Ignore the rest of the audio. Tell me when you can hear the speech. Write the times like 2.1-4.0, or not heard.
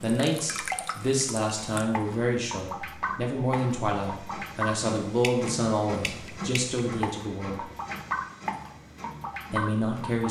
0.0-7.7, 9.5-10.2.